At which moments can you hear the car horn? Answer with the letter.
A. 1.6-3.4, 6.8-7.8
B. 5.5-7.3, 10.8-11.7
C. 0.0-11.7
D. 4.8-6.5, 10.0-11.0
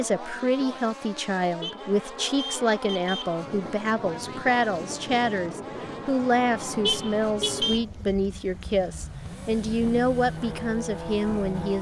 A.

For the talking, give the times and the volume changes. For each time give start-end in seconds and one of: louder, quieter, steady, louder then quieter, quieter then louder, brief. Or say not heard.
0.0-11.7 steady.